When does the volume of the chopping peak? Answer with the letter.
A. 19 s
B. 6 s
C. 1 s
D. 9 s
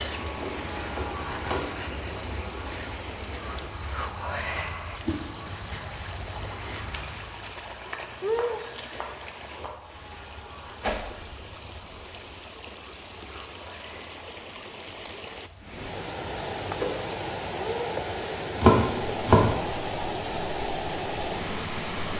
A.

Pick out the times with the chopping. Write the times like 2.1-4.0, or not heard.
0.4-1.8, 8.2-9.7, 18.1-19.6.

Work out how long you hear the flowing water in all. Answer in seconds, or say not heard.
22 s.